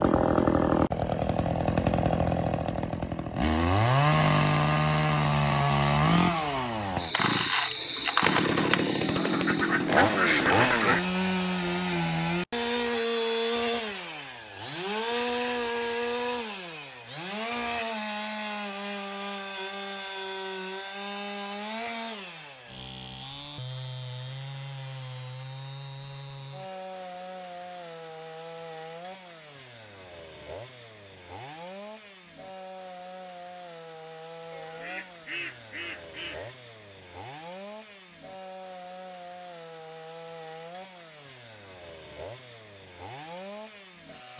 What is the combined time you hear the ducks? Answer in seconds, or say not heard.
4 s.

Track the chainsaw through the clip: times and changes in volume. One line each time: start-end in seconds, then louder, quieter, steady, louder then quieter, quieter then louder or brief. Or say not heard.
0.0-44.3 quieter.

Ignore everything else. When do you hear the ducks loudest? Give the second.
10 s.